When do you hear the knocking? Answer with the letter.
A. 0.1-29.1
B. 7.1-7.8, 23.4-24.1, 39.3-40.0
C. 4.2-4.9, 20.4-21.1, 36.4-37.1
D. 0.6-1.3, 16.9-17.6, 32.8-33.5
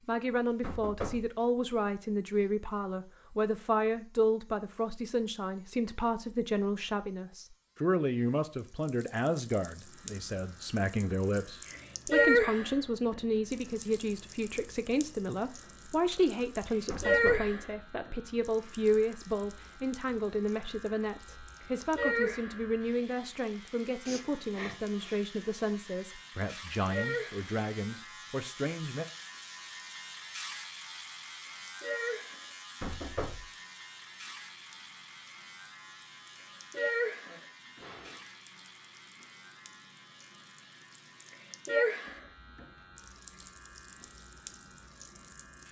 D.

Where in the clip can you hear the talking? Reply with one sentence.
The talking can be heard from 0.1 to 29.1 s.